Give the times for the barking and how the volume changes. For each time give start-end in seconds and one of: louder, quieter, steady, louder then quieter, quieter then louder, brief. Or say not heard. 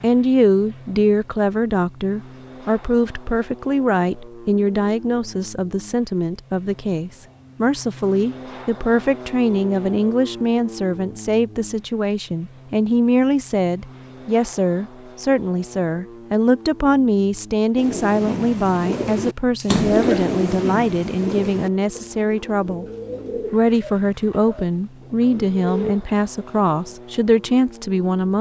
not heard.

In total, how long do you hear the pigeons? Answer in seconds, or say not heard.
9 s.